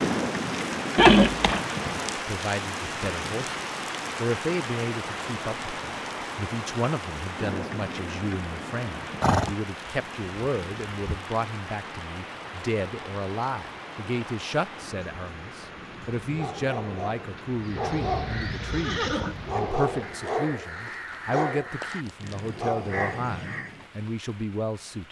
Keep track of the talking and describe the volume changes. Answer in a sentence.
The loudness of the talking stays about the same.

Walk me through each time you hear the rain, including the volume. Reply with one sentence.
You can hear the rain from 0.0 to 25.0 s, getting quieter.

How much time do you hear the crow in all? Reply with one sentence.
You can hear the crow for 6 seconds altogether.